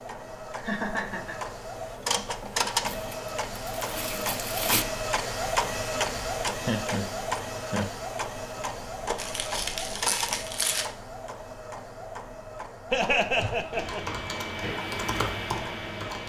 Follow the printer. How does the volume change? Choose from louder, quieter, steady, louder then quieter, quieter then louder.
quieter.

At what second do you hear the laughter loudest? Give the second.
13 s.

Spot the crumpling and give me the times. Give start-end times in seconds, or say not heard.
2.9-4.8, 9.2-10.9.